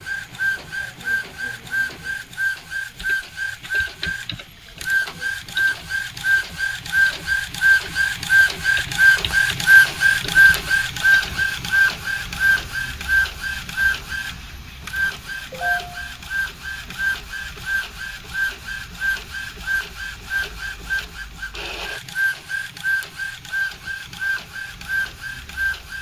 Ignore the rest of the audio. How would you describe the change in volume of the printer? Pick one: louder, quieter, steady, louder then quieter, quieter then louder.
louder then quieter.